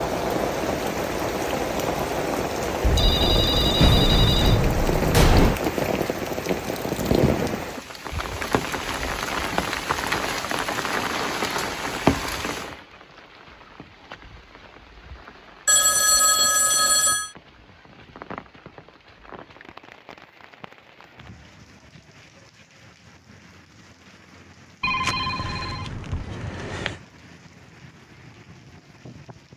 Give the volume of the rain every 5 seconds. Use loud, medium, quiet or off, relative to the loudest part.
loud, loud, loud, quiet, quiet, quiet.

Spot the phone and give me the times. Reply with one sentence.
The phone can be heard from 2.8 to 5.6 s, from 15.7 to 17.3 s and from 24.8 to 27.0 s.